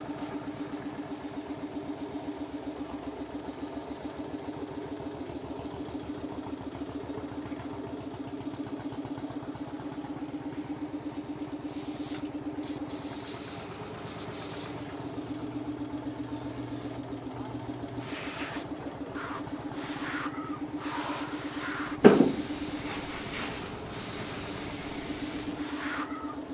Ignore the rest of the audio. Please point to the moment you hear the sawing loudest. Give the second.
22 s.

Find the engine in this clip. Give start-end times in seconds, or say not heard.
0.0-26.4.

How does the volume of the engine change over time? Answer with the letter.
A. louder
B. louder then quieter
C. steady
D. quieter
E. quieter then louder
C.